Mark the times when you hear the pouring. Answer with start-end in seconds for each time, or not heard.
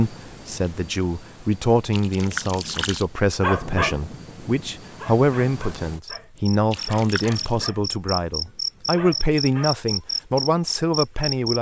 1.9-3.0, 6.7-7.6.